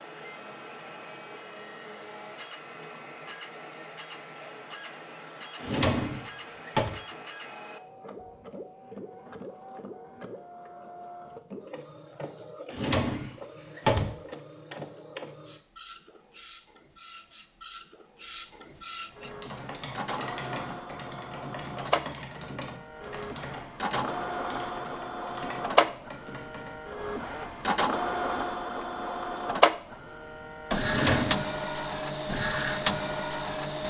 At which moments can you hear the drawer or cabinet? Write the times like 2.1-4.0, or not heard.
5.6-7.0, 12.7-14.2, 30.9-31.5.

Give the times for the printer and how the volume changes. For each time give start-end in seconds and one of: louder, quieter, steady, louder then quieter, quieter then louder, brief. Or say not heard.
0.0-33.8 louder.